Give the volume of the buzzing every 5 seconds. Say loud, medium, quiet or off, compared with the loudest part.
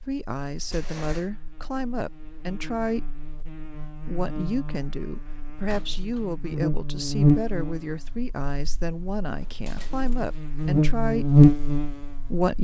quiet, medium, loud.